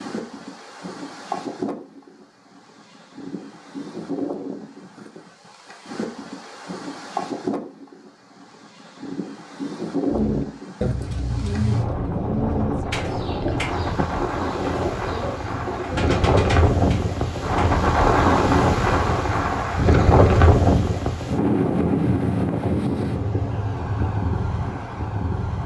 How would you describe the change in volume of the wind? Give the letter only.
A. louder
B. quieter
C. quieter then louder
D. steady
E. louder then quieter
A.